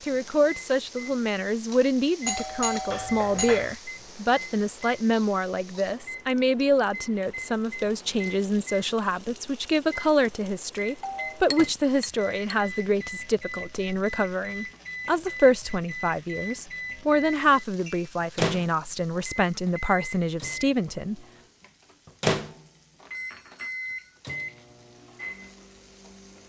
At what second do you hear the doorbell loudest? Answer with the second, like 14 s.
3 s.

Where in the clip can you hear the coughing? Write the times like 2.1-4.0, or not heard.
not heard.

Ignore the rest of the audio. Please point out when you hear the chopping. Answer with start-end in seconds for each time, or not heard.
not heard.